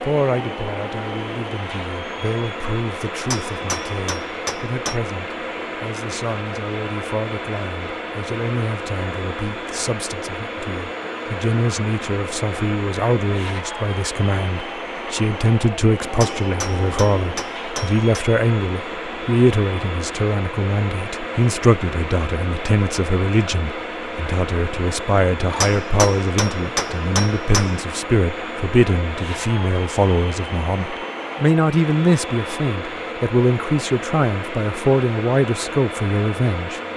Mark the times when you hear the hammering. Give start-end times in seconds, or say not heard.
3.3-5.0, 16.2-18.2, 25.6-27.8.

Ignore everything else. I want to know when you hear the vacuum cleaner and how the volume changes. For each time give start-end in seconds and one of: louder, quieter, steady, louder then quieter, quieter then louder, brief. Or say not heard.
0.0-36.9 steady.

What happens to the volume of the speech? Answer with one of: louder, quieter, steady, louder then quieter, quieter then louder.
louder.